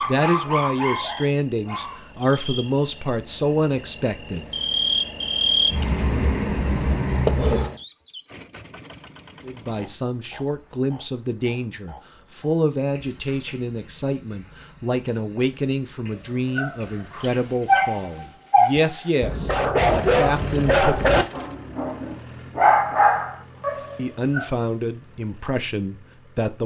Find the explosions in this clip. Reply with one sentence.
You can't hear the explosions here.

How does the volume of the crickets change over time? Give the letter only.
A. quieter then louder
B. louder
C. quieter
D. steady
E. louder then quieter
E.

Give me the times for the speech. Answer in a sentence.
You can hear the speech from 0.1 to 4.5 s, from 9.4 to 21.2 s and from 23.9 to 26.6 s.